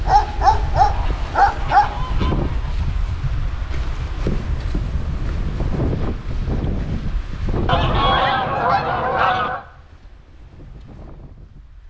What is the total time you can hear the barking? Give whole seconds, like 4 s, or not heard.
2 s.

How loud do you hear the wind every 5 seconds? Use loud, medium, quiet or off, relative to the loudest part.
loud, loud, quiet.